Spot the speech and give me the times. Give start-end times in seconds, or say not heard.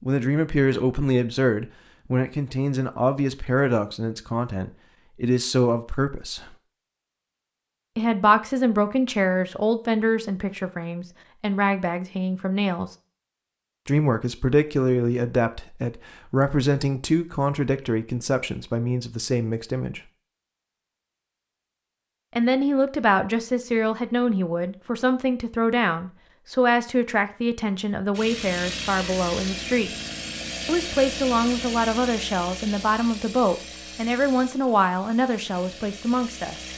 0.0-6.5, 8.0-12.9, 13.8-20.0, 22.4-29.9, 30.6-36.7.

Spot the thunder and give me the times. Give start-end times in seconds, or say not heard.
not heard.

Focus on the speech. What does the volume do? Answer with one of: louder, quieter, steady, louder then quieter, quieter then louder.
steady.